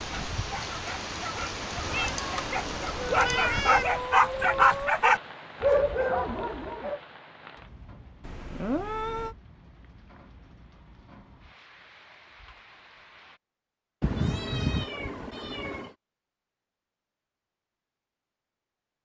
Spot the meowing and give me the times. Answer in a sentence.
You can hear the meowing from 1.8 to 3.9 s, from 8.2 to 9.3 s and from 14.0 to 15.9 s.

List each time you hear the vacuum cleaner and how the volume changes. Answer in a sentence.
You can't hear the vacuum cleaner here.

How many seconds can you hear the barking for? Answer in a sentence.
You can hear the barking for 7 seconds altogether.